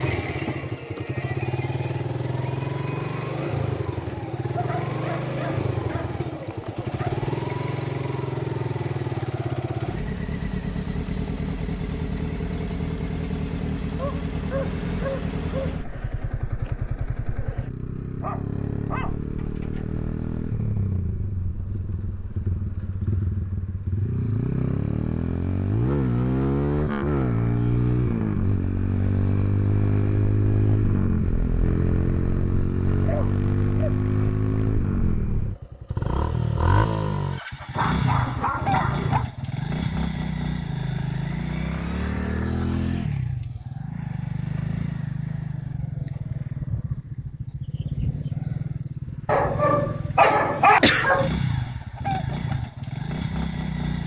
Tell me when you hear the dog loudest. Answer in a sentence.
The volume of the dog peaks at 51 seconds.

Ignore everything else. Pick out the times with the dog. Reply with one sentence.
The dog can be heard from 4.5 to 7.2 s, from 13.9 to 15.8 s, from 18.2 to 19.9 s, from 33.0 to 34.3 s, from 37.8 to 39.2 s and from 49.2 to 51.3 s.